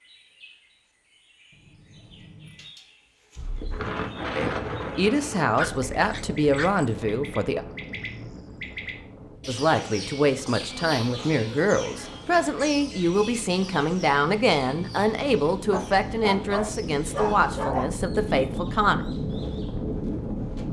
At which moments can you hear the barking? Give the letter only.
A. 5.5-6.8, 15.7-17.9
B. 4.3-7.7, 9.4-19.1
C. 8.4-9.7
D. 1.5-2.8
A.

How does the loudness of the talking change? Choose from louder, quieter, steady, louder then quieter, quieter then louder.
steady.